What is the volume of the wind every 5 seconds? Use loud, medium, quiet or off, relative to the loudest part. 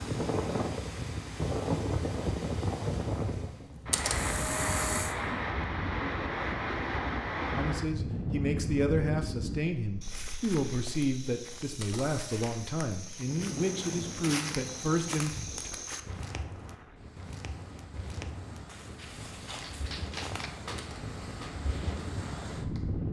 loud, loud, medium, quiet, medium.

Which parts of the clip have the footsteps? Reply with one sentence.
The footsteps can be heard from 10.0 to 20.6 s.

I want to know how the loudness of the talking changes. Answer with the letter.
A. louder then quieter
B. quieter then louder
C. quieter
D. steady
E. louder
D.